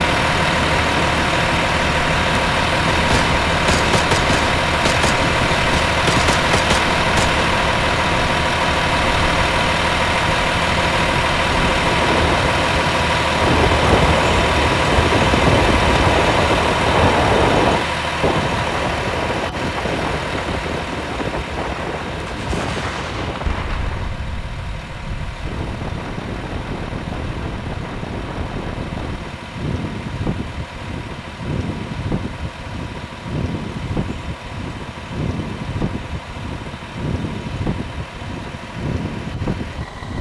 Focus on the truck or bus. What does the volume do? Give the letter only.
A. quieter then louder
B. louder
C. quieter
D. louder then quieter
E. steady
C.